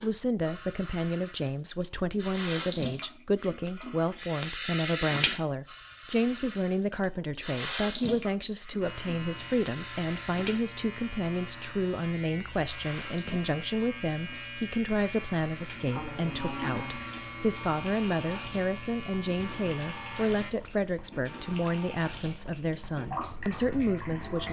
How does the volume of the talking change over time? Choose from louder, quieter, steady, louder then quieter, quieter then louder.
steady.